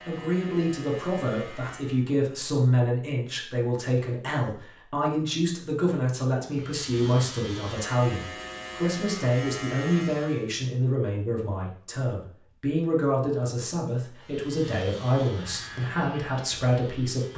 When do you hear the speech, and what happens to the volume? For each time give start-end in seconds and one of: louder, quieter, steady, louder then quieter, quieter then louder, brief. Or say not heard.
0.0-17.3 steady.